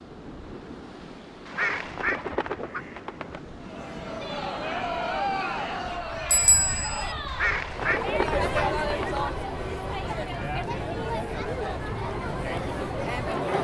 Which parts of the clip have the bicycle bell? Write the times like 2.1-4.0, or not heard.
6.3-7.2.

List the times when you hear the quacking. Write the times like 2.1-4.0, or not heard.
1.4-3.4, 7.2-9.2.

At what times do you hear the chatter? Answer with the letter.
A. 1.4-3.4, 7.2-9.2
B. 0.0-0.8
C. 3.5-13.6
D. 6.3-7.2
C.